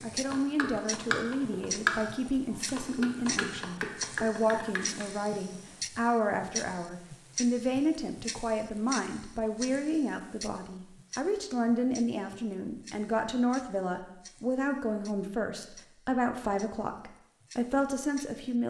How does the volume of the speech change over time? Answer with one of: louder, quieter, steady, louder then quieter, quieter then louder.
steady.